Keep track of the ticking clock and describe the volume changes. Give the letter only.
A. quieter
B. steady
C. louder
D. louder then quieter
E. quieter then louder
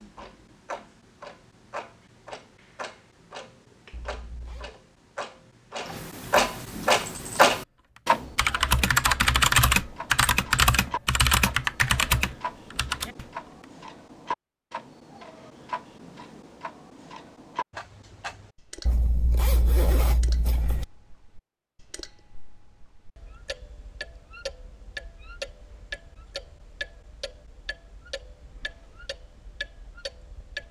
D.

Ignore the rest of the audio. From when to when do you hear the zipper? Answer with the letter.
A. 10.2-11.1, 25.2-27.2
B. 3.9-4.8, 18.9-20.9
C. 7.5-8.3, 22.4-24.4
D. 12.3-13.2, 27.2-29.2
B.